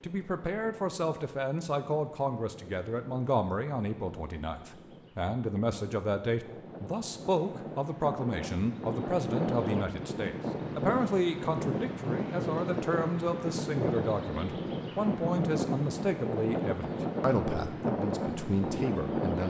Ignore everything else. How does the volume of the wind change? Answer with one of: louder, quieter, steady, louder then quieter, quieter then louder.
louder.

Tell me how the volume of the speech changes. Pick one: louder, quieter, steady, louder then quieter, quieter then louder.
steady.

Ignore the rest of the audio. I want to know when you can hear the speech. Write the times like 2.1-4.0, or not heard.
0.0-19.4.